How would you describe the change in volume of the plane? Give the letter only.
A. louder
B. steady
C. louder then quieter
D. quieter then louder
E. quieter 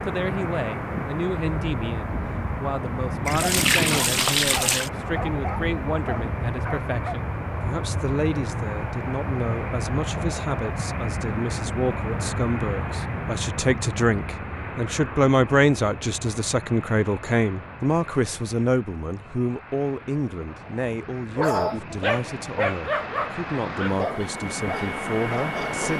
D.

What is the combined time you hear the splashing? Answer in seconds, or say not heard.
2 s.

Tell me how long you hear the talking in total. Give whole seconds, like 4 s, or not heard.
26 s.